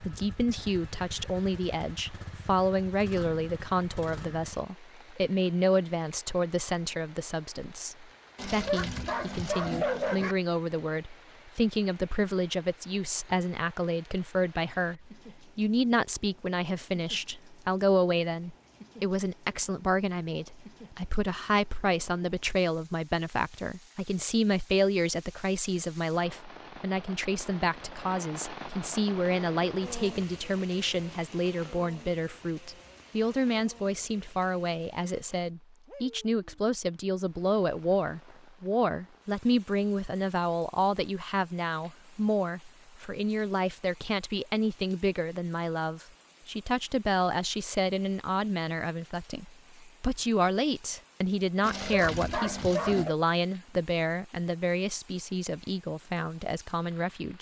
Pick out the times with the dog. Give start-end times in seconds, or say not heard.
8.3-10.3, 51.6-53.1.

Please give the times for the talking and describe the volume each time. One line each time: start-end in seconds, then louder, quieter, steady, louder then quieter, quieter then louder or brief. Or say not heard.
0.0-57.3 steady.